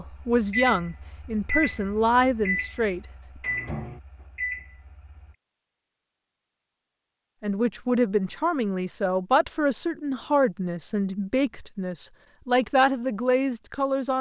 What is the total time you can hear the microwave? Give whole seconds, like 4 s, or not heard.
5 s.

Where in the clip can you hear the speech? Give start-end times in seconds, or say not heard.
0.0-3.0, 7.4-14.1.